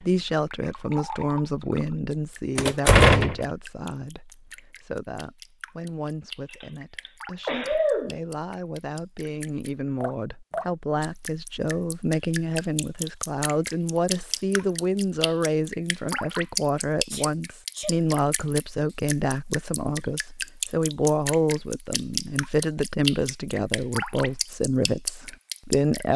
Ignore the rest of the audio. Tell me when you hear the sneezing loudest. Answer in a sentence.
The loudest moment of the sneezing is at 8 seconds.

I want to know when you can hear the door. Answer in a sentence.
The door can be heard from 2.5 to 3.5 s.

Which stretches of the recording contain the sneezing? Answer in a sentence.
The sneezing can be heard from 6.5 to 8.2 s and from 17.1 to 18.0 s.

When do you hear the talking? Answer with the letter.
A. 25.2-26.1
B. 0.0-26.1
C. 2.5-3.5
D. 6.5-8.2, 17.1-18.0
B.